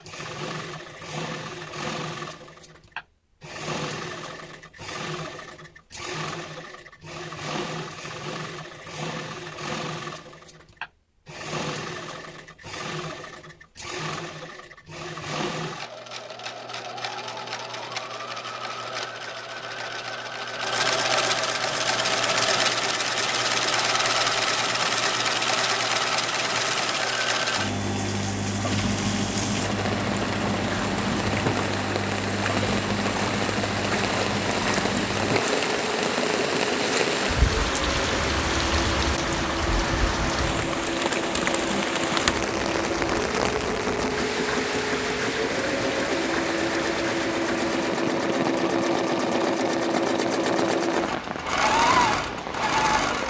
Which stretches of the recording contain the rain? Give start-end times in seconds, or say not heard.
21.6-53.2.